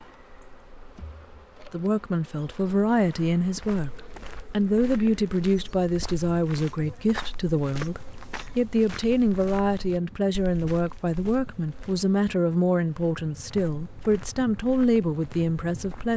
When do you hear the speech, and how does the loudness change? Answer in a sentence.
You can hear the speech from 1.7 to 16.1 s, at a steady volume.